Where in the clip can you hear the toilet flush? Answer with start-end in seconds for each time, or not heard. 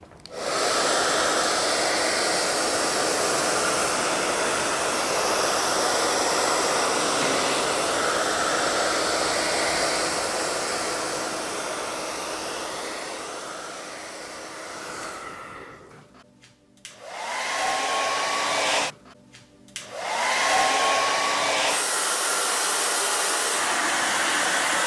7.0-7.7.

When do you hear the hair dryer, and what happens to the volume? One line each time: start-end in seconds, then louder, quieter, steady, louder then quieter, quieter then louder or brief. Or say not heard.
0.0-24.8 quieter then louder.